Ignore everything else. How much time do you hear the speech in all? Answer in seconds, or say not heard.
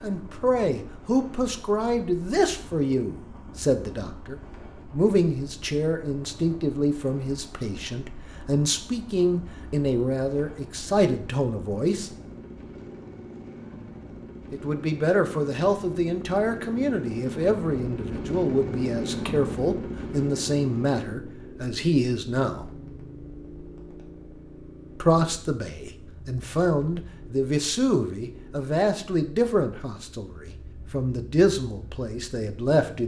28 s.